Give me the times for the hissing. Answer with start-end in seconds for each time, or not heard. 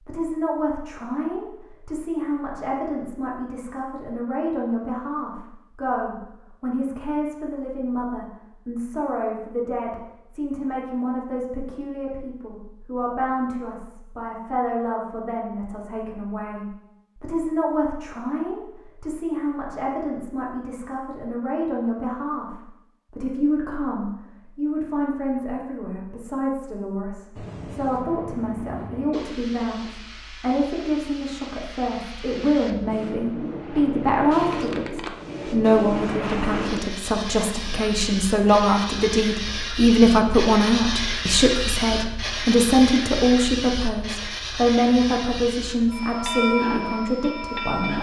27.4-47.9.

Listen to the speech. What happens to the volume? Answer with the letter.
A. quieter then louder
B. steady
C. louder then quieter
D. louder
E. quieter
D.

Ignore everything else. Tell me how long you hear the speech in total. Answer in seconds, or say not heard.
48 s.